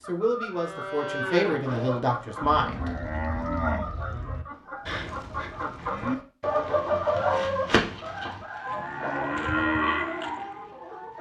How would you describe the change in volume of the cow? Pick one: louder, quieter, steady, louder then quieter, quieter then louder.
quieter then louder.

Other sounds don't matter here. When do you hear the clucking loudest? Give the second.
7 s.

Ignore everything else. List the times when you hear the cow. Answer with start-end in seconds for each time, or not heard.
0.5-10.6.